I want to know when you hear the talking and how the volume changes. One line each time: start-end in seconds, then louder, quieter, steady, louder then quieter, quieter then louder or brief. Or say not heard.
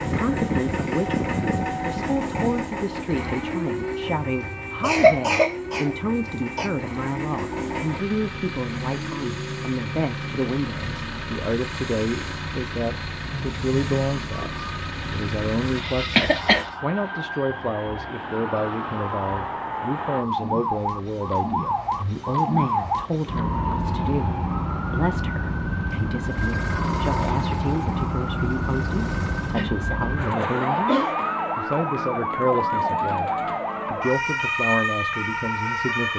0.1-36.1 steady.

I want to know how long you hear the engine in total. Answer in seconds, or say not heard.
20 s.